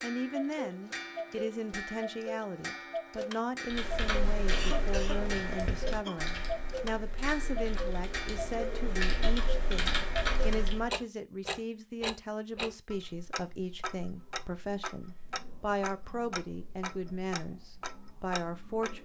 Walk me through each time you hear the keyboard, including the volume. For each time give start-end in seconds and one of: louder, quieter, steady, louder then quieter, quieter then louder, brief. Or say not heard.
3.7-10.9 quieter then louder.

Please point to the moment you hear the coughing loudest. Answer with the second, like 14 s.
5 s.